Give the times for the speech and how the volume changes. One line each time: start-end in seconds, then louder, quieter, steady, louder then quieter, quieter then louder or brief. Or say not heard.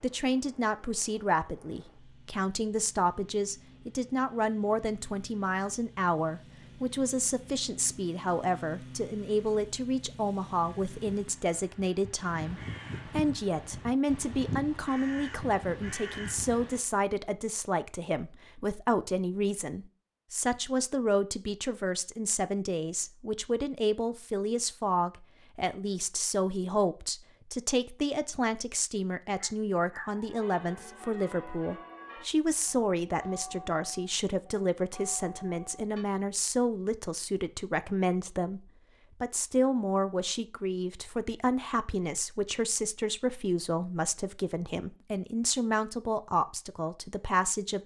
0.0-47.8 steady.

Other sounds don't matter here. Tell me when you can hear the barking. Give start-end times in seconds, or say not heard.
29.4-30.4.